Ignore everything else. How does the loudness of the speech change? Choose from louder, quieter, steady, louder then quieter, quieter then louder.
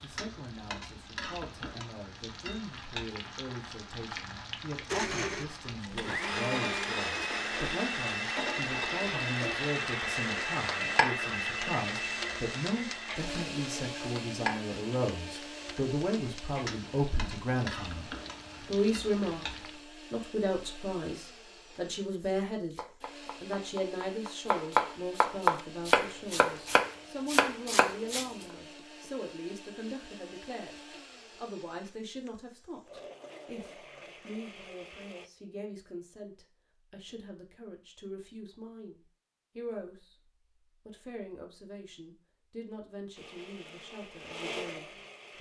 louder then quieter.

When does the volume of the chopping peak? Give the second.
25 s.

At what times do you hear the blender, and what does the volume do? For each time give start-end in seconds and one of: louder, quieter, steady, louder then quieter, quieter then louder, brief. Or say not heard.
4.8-35.3 quieter
43.1-45.3 brief.